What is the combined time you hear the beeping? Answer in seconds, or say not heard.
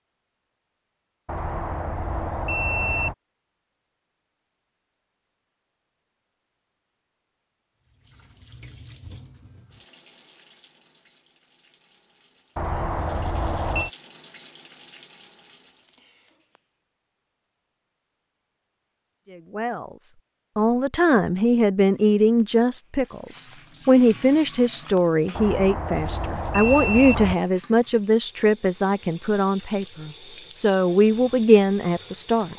5 s.